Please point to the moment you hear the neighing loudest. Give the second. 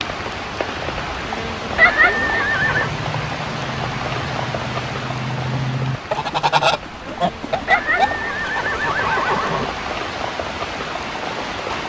2 s.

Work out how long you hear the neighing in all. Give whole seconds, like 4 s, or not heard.
3 s.